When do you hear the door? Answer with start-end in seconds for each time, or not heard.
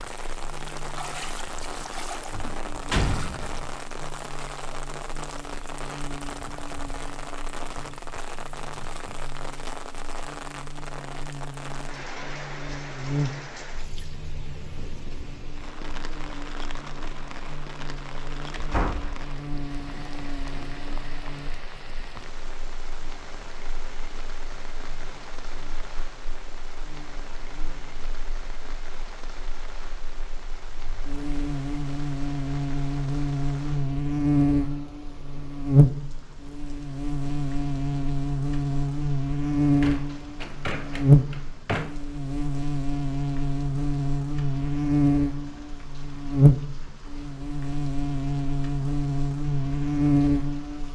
2.4-3.7, 18.5-19.2, 39.6-42.0.